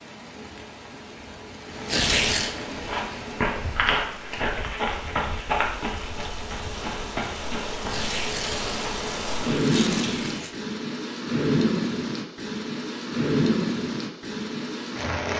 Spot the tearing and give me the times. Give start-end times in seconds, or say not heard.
1.9-2.5, 7.8-10.6.